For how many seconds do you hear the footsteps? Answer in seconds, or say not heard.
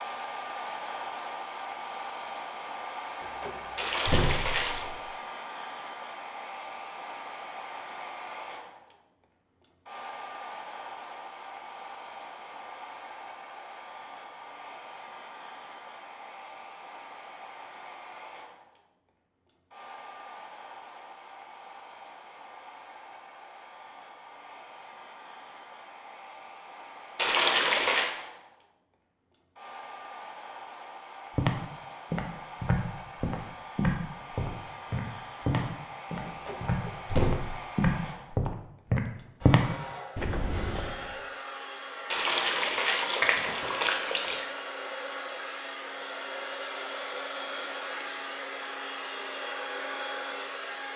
10 s.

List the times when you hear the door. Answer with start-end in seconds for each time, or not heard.
3.2-5.0, 36.2-37.4.